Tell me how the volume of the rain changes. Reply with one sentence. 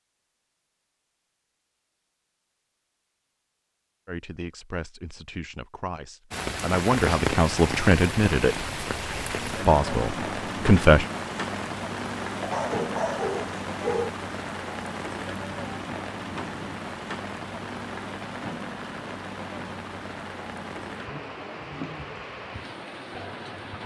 The volume of the rain goes down.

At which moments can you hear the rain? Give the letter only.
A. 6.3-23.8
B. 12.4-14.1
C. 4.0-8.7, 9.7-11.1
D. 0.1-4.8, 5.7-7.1
A.